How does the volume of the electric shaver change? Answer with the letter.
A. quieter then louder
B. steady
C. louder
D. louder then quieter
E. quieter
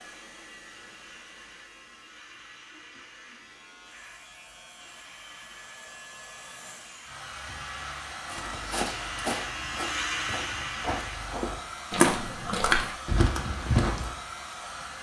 C.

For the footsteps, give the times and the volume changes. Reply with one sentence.
The footsteps can be heard from 8.3 to 14.1 s, getting quieter then louder.